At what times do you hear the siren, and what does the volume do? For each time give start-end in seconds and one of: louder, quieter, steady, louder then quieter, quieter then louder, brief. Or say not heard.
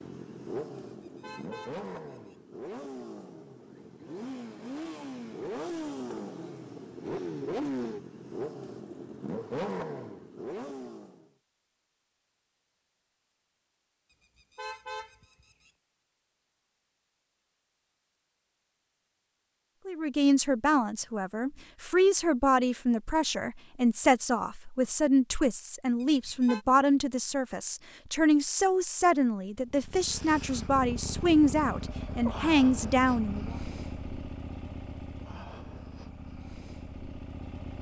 not heard.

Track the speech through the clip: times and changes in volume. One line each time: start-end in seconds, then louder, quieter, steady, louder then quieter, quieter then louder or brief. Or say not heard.
19.9-33.5 steady.